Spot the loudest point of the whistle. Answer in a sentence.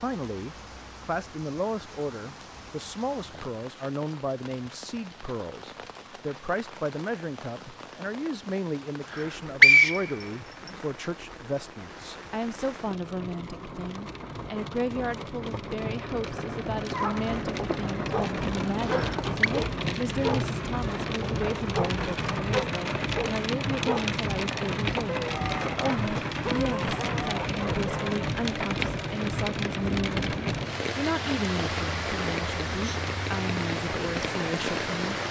The loudest moment of the whistle is at 10 seconds.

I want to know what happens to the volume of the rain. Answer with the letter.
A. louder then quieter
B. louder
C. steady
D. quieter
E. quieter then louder
B.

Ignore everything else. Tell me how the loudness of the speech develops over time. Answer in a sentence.
The loudness of the speech stays about the same.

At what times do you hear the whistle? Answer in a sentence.
The whistle can be heard from 9.1 to 10.7 s and from 18.8 to 19.5 s.